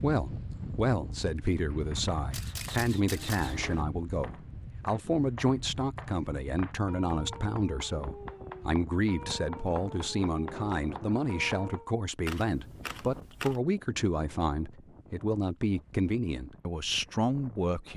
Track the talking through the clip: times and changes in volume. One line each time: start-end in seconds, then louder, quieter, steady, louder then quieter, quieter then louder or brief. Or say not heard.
0.0-17.9 steady.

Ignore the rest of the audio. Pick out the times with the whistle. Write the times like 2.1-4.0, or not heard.
not heard.